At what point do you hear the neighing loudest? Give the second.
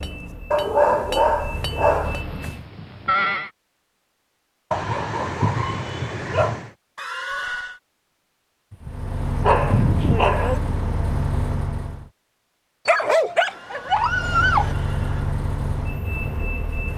3 s.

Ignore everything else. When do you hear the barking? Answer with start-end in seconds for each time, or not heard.
0.5-2.2, 4.7-6.7, 8.7-10.6, 12.8-14.8.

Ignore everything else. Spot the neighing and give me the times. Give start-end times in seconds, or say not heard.
2.0-3.5, 7.0-7.8, 13.4-15.4.